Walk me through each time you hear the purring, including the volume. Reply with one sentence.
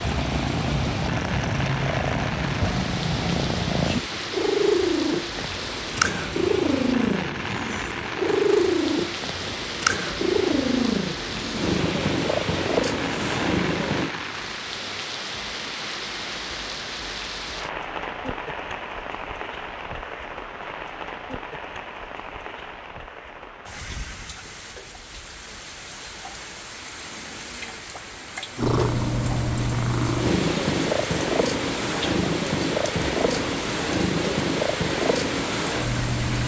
You can hear the purring from 0.0 to 14.2 s, at a steady volume; and from 28.6 to 36.4 s, at a steady volume.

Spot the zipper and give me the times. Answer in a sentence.
The zipper can't be heard in this clip.